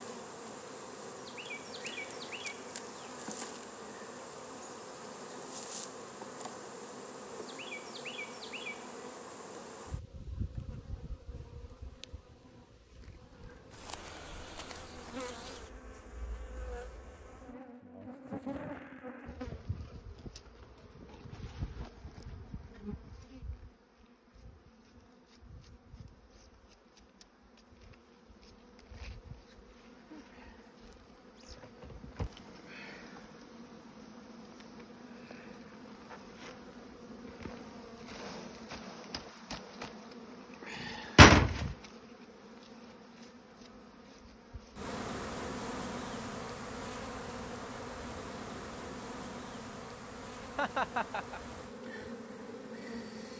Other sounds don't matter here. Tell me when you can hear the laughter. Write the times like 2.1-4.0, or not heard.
50.4-51.4.